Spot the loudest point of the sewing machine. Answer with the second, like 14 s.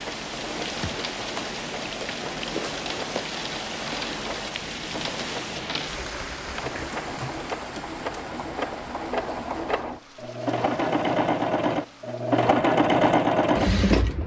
13 s.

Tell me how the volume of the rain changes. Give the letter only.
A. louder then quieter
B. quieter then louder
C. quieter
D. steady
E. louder
C.